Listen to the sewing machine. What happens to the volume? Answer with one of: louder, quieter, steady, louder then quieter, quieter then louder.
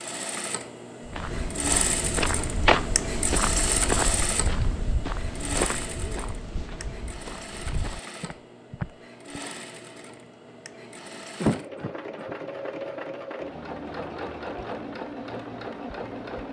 quieter then louder.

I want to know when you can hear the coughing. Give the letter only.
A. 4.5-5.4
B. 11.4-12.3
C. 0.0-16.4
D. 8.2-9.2
B.